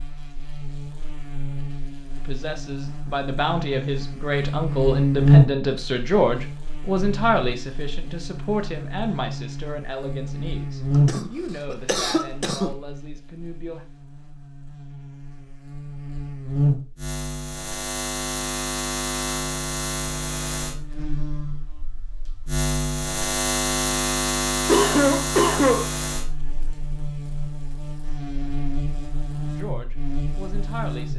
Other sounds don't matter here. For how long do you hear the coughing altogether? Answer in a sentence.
The coughing can be heard for 3 seconds in total.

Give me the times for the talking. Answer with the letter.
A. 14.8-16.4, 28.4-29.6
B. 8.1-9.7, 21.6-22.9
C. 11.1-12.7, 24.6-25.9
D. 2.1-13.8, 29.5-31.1
D.